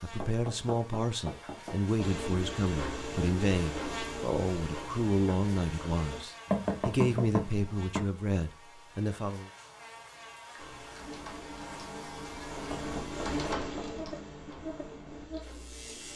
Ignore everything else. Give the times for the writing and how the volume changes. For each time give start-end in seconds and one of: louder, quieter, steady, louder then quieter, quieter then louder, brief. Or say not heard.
not heard.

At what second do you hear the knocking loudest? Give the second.
7 s.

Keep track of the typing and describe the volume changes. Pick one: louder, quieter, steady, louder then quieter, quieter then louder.
louder then quieter.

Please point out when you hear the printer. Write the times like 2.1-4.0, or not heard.
2.0-6.2, 10.6-16.1.